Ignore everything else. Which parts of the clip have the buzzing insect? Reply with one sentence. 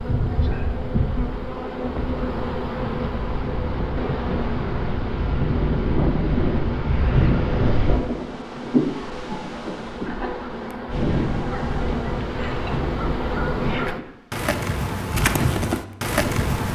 You can hear the buzzing insect from 0.0 to 16.7 s.